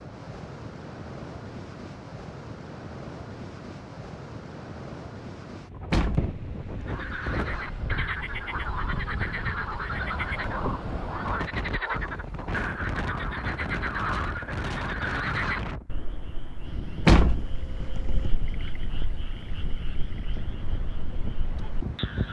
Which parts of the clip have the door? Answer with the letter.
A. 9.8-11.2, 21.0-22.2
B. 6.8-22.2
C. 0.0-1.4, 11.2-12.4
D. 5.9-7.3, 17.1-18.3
D.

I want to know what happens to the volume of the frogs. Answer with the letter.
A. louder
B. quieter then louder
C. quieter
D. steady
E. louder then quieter
C.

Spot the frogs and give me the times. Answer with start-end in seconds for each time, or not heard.
6.8-22.2.